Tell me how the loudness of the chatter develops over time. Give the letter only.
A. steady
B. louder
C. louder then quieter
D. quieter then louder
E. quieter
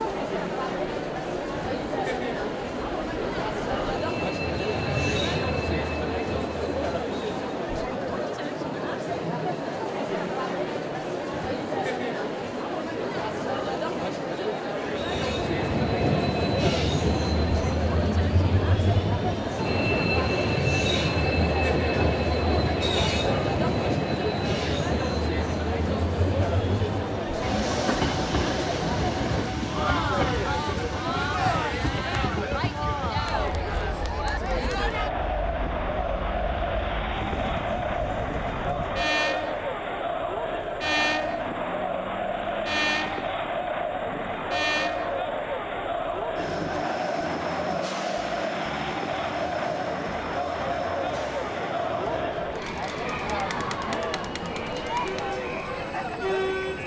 A.